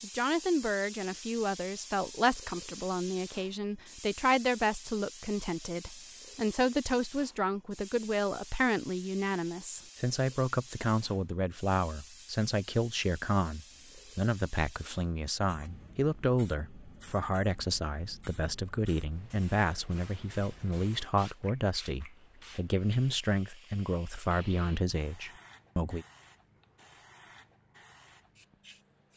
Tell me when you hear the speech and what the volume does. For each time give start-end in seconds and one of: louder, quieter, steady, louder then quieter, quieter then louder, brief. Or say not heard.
0.0-26.1 steady.